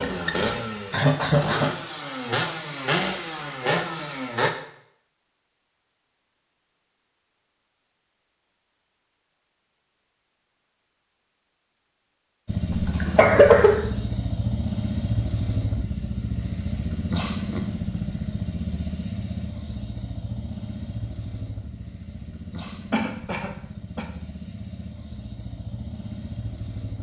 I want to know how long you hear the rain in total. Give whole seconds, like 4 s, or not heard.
not heard.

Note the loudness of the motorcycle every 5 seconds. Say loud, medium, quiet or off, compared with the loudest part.
loud, off, loud, loud, medium, medium.